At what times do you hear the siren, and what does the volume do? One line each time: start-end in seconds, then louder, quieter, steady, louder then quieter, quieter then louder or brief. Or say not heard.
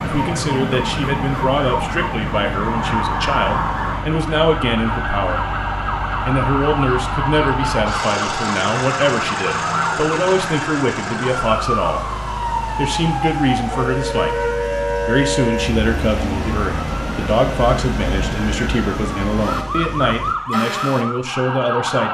0.0-22.0 steady.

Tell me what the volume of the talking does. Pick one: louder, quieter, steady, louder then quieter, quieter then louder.
steady.